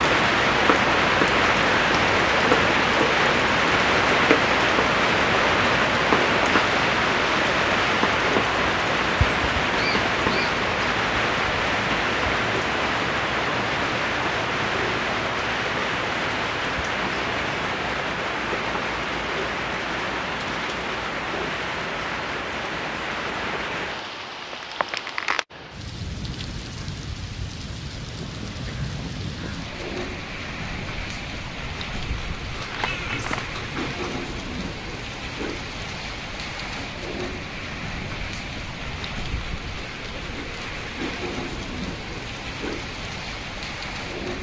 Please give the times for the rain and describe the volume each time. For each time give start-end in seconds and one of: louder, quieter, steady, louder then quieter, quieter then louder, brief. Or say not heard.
0.0-44.3 quieter.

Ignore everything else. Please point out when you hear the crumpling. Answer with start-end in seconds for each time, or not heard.
32.6-33.6.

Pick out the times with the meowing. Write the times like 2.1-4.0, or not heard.
32.4-34.2.